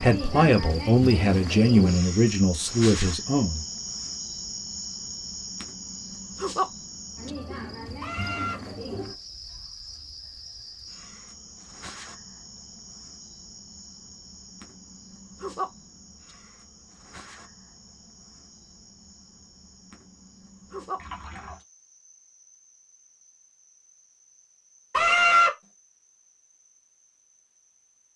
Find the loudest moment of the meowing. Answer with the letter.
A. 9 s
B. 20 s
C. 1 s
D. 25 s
D.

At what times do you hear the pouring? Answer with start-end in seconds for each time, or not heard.
20.9-21.6.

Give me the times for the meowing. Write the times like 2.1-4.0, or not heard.
8.0-8.6, 24.9-25.6.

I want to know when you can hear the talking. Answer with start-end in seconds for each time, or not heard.
0.0-3.6.